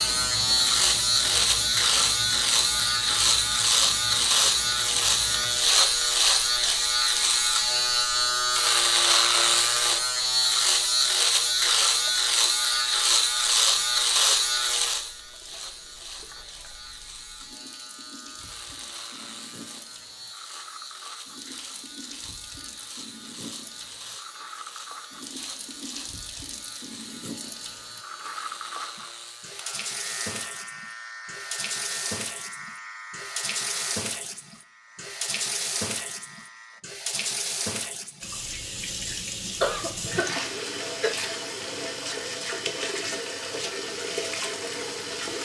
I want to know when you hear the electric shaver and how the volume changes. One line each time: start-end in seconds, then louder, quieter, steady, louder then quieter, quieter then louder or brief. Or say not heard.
0.0-36.8 quieter.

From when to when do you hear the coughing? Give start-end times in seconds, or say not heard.
39.6-41.1.